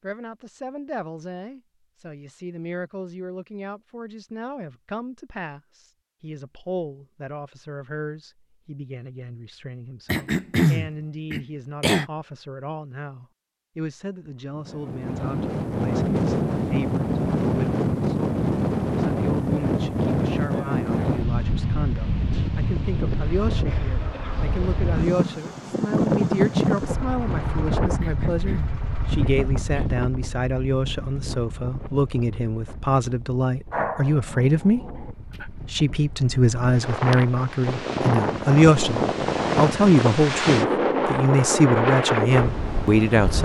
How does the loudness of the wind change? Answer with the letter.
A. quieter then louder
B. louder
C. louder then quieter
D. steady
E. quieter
A.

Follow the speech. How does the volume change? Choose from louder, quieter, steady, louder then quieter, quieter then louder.
louder.